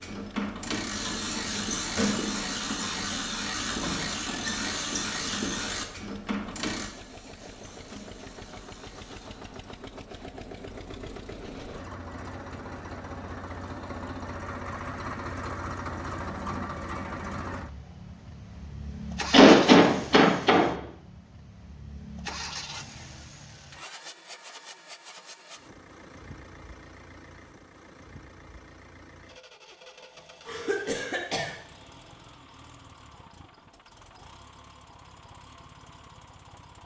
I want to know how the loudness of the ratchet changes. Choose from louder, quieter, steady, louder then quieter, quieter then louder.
quieter.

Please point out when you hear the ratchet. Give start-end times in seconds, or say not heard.
0.0-9.4.